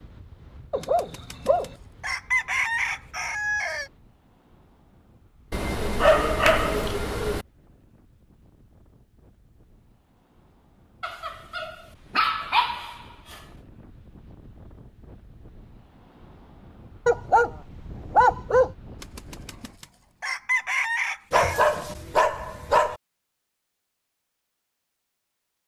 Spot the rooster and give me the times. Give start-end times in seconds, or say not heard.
0.8-3.9, 19.0-21.7.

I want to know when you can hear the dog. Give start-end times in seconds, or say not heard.
0.7-1.7, 5.5-7.5, 11.0-13.3, 17.1-18.8, 21.3-22.9.